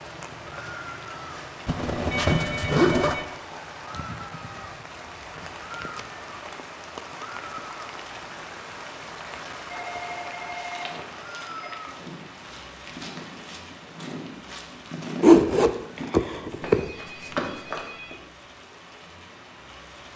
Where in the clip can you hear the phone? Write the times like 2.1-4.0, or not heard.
1.9-3.2, 9.7-11.7, 16.6-18.2.